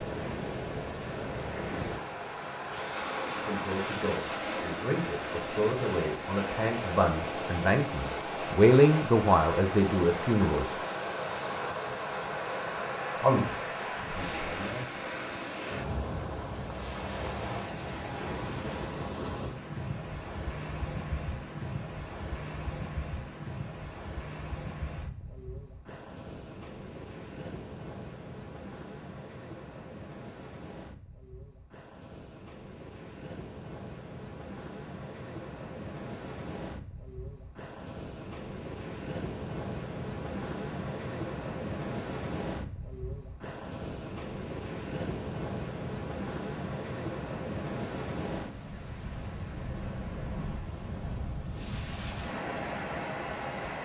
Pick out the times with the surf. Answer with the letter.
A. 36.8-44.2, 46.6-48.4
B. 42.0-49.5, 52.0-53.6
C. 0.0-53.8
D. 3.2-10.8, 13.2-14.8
C.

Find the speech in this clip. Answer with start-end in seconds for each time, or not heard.
3.2-10.8, 13.2-14.8.